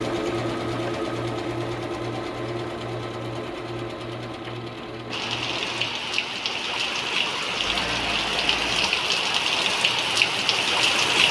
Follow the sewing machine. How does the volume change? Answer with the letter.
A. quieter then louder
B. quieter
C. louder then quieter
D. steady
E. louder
B.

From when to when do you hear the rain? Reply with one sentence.
The rain can be heard from 5.1 to 11.2 s.